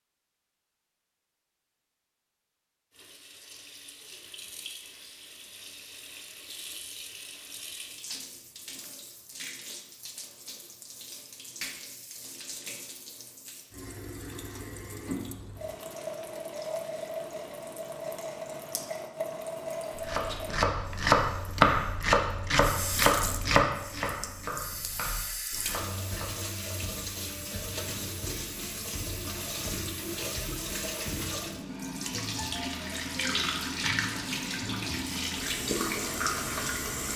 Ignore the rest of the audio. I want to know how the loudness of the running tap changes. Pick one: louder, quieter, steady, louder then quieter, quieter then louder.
louder.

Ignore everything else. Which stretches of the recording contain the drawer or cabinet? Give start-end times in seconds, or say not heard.
not heard.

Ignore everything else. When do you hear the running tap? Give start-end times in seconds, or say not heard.
2.9-37.1.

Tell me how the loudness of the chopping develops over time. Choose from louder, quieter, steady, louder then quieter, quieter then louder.
quieter.